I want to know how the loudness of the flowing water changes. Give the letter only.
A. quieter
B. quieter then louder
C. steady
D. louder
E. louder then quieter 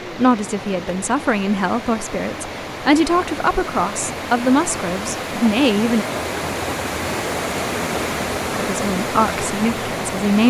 D.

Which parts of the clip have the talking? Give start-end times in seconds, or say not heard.
0.1-6.0, 8.6-10.4.